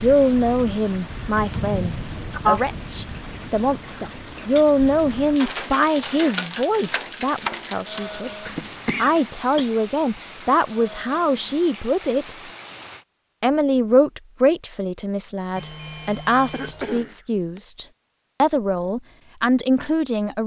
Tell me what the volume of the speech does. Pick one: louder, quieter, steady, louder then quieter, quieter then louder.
steady.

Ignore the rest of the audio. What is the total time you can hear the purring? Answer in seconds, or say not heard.
not heard.